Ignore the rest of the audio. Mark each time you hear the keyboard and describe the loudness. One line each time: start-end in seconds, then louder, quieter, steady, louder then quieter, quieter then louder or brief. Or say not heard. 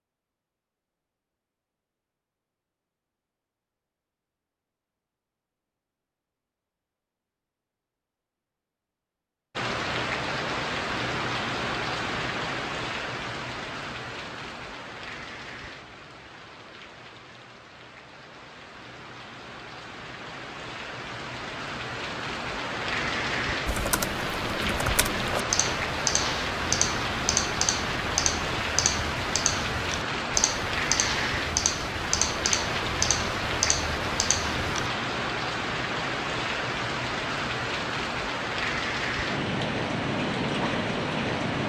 23.6-34.9 steady.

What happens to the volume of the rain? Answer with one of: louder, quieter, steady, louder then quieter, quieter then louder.
quieter then louder.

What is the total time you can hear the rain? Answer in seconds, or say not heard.
32 s.